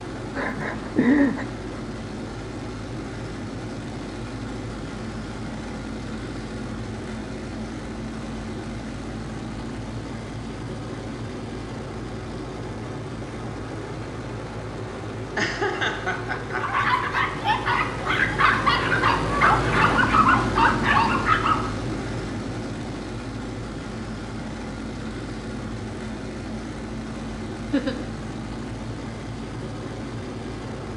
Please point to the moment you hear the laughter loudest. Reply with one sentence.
The loudest moment of the laughter is at 1 second.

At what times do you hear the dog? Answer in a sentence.
You can hear the dog from 16.5 to 21.7 s.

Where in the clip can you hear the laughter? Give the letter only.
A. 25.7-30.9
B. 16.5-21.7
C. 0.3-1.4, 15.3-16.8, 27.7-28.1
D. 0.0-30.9
C.